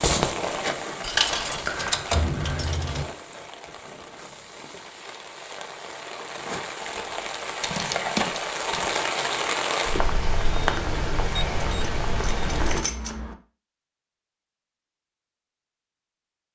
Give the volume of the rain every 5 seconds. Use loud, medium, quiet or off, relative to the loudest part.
loud, loud, loud, off.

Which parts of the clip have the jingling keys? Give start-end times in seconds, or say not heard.
1.0-3.0, 11.3-13.3.